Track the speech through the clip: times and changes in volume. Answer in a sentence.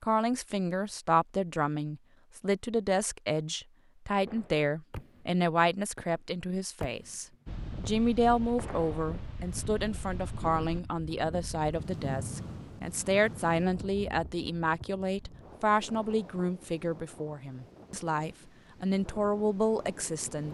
The speech can be heard from 0.0 to 20.5 s, at a steady volume.